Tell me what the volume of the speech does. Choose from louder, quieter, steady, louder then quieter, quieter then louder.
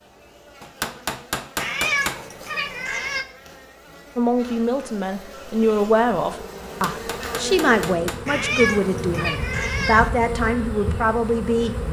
steady.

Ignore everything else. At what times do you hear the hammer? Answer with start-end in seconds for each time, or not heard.
0.6-2.2, 6.6-8.2.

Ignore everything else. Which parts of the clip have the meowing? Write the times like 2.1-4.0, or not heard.
1.6-3.2, 8.2-10.1.